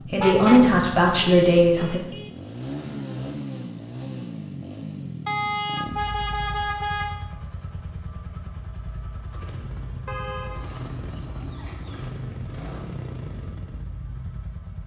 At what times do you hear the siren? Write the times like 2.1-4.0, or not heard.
not heard.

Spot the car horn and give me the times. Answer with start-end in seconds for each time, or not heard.
0.1-0.8, 5.2-7.2, 10.1-12.1.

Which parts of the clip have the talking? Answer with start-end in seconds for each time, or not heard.
0.1-2.0.